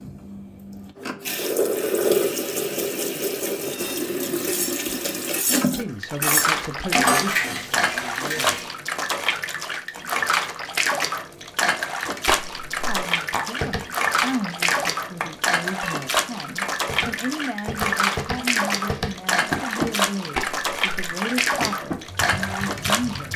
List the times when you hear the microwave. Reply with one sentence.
You can't hear the microwave here.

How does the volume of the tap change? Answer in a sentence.
The volume of the tap stays about the same.